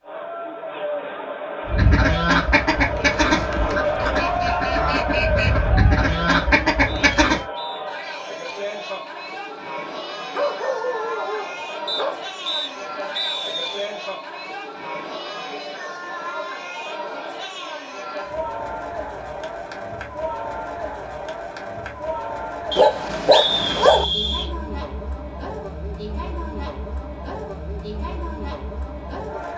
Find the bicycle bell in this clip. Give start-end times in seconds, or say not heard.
not heard.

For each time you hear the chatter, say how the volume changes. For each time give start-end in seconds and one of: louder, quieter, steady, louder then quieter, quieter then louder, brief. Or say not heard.
0.0-29.5 quieter.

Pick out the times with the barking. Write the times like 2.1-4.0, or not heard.
3.0-4.7, 10.3-12.2, 22.8-24.1.